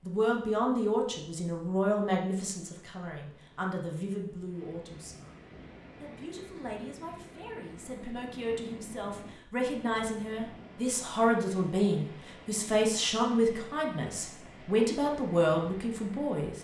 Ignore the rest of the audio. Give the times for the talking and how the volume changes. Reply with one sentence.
You can hear the talking from 0.1 to 16.5 s, getting quieter then louder.